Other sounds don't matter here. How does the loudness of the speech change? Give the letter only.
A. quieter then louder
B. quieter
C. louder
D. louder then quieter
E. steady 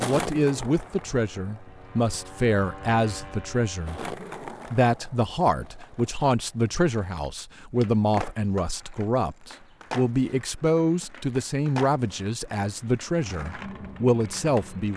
E.